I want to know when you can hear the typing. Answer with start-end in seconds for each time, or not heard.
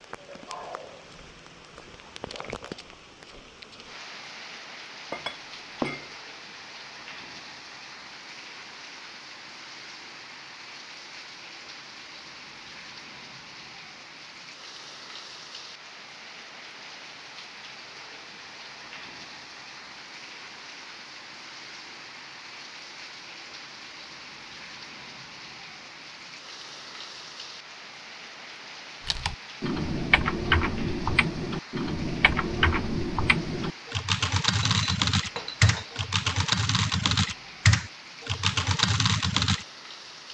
29.1-39.6.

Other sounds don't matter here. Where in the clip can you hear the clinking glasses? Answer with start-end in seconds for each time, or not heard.
5.1-6.2, 34.6-36.0.